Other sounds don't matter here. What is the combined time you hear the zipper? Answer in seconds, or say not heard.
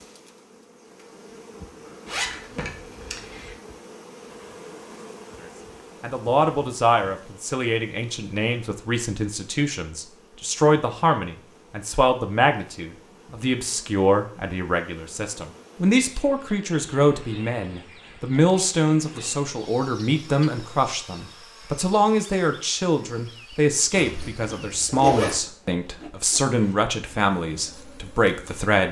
3 s.